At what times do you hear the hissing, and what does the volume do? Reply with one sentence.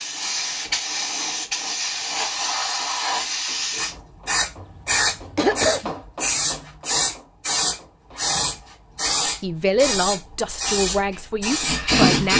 You can hear the hissing from 0.0 to 12.3 s, at a steady volume.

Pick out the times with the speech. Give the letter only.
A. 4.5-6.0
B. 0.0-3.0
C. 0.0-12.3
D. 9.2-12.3
D.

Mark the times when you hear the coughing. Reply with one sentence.
The coughing can be heard from 4.5 to 6.0 s.